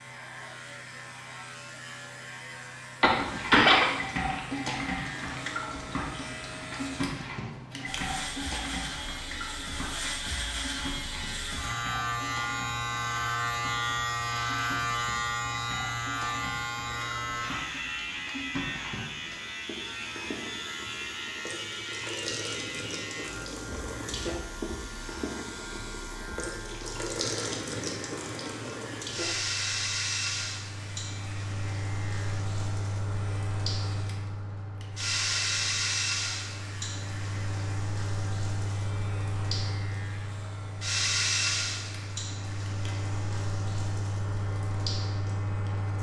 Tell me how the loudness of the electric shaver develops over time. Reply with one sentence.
The loudness of the electric shaver goes up, then down.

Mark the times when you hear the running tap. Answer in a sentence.
The running tap can be heard from 3.1 to 45.9 s.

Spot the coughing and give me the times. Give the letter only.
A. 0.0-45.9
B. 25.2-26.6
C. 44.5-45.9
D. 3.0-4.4
D.